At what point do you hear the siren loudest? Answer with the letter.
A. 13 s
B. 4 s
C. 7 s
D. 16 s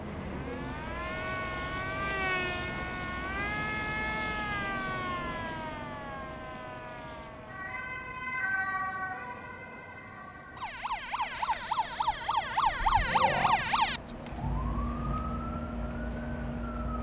A.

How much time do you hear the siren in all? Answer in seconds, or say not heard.
17 s.